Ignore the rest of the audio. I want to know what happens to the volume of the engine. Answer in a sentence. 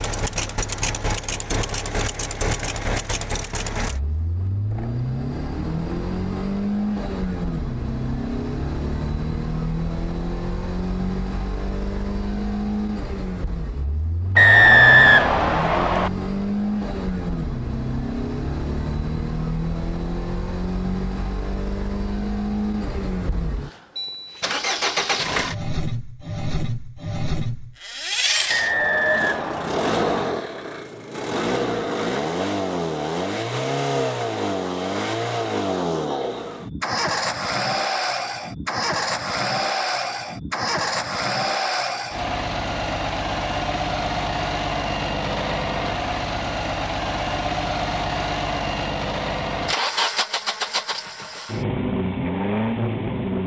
The volume of the engine stays about the same.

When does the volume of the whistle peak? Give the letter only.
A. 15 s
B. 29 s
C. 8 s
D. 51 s
A.